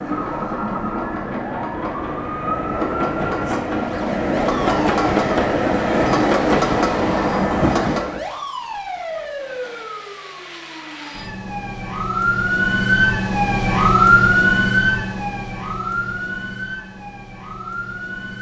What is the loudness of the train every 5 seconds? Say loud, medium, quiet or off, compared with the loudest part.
medium, loud, off, off.